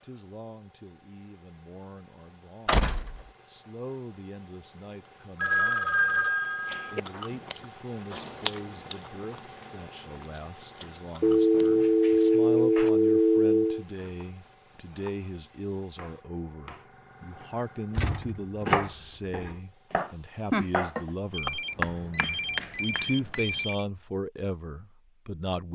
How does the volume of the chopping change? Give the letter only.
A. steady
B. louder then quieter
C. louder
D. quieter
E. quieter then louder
C.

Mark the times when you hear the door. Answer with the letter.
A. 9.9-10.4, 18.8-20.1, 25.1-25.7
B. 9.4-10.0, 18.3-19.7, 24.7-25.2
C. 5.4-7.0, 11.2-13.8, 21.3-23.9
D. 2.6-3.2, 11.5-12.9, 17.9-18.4
D.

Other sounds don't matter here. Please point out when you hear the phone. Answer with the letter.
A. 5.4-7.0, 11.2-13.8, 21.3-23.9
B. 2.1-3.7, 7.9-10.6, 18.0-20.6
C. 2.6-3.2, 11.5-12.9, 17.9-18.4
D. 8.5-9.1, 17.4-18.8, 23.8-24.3
A.